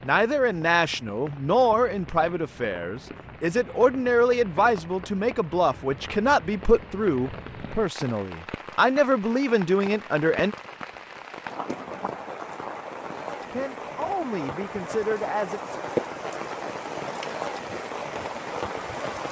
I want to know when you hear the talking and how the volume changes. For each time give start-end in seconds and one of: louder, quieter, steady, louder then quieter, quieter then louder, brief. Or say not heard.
0.0-10.6 steady
13.5-15.6 brief.